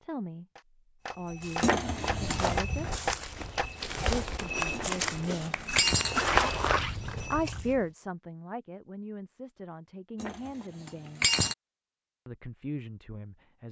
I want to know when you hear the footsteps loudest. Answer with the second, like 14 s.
6 s.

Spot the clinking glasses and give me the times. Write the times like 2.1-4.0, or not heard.
1.6-2.6, 4.7-6.2, 10.2-11.6.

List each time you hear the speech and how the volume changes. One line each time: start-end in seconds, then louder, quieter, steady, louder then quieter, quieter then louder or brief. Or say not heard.
0.0-2.9 brief
4.0-5.5 brief
7.3-11.3 quieter
12.2-13.6 brief.